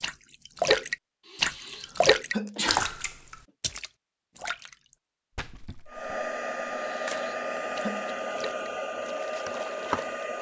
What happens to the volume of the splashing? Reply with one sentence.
The loudness of the splashing goes down.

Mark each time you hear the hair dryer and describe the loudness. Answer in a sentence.
The hair dryer can be heard from 5.8 to 10.3 s, at a steady volume.